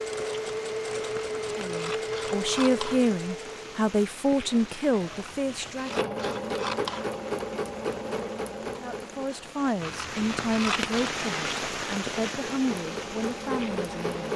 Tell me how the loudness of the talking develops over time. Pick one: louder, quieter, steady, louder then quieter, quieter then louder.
quieter.